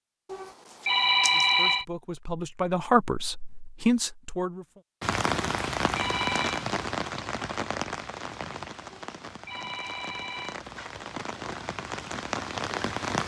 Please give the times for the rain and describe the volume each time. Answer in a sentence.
The rain can be heard from 5.0 to 13.2 s, getting quieter then louder.